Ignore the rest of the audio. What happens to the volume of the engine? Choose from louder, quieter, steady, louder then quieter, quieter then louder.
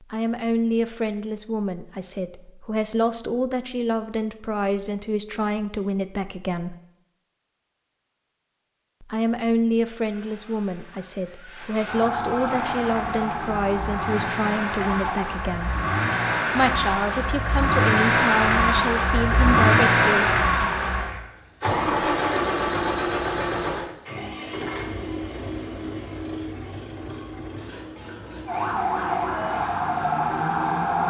louder then quieter.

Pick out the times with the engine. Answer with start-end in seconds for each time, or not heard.
12.4-29.6.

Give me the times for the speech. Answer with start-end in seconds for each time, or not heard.
0.0-6.8, 9.0-15.8, 16.5-20.2.